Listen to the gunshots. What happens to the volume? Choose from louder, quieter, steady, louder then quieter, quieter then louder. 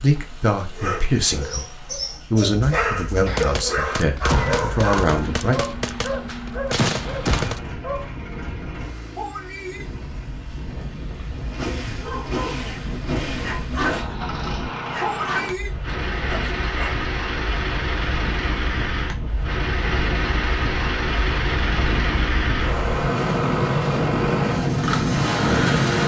quieter then louder.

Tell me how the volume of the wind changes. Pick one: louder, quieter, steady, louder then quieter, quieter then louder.
louder.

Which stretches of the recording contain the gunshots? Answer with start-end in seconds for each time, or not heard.
3.2-7.6.